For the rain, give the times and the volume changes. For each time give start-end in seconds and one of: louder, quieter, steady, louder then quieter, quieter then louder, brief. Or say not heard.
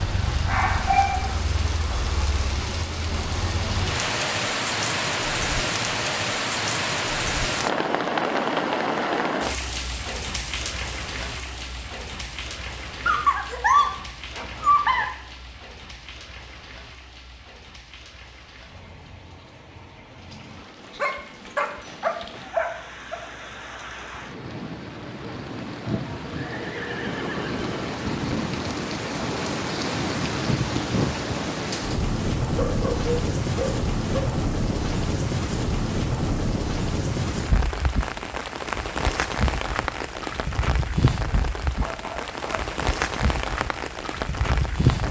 0.0-45.0 quieter then louder.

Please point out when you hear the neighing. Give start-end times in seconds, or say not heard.
26.2-27.8.